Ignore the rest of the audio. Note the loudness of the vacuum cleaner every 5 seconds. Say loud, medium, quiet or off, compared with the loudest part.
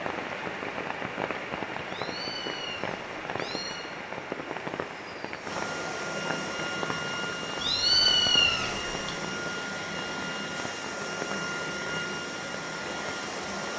quiet, loud, loud.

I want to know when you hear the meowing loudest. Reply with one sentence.
The volume of the meowing peaks at 8 seconds.